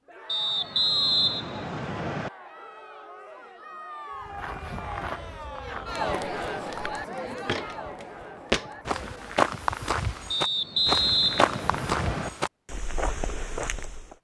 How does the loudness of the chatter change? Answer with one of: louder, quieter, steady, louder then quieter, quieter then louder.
louder then quieter.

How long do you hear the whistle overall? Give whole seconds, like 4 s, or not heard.
4 s.